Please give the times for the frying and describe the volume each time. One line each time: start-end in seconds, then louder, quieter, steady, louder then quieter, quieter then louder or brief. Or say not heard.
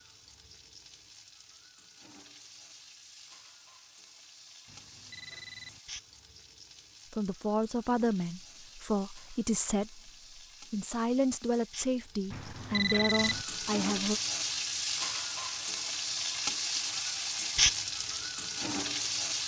0.0-19.4 louder.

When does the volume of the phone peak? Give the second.
13 s.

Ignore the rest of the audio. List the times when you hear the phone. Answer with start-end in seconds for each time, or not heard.
4.7-5.8, 12.3-13.4.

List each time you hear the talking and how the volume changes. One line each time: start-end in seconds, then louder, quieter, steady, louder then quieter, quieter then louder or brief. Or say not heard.
7.1-14.2 steady.